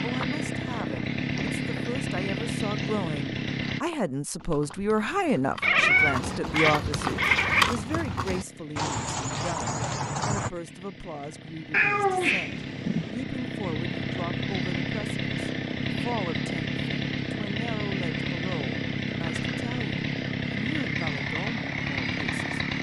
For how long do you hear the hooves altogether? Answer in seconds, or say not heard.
7 s.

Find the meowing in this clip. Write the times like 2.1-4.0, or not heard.
5.6-7.8, 11.7-13.1.